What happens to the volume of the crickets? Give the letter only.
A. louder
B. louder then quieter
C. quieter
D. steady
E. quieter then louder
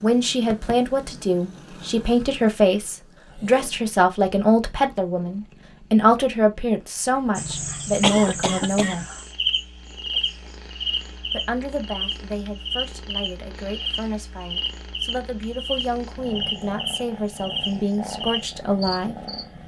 D.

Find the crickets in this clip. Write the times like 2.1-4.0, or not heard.
7.3-19.5.